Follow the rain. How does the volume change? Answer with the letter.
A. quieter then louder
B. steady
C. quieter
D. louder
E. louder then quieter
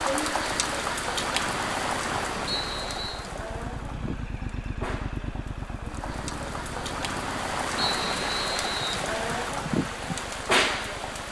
A.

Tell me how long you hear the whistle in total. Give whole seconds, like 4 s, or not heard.
2 s.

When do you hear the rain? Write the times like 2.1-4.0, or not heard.
0.0-11.2.